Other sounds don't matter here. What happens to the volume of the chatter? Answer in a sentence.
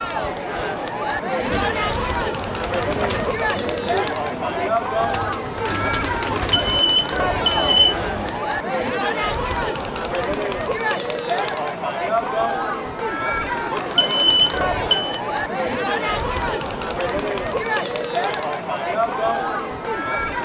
The volume of the chatter stays about the same.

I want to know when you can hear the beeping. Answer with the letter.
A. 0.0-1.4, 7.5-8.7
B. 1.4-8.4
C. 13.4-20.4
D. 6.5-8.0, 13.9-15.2
D.